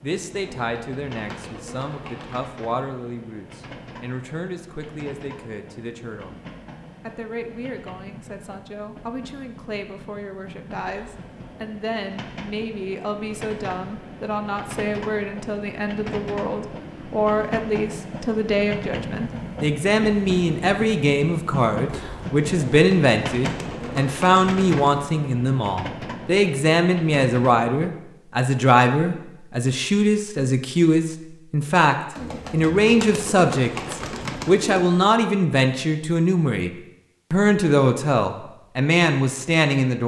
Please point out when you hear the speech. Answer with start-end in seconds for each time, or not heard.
0.0-6.4, 7.0-36.7, 37.3-40.0.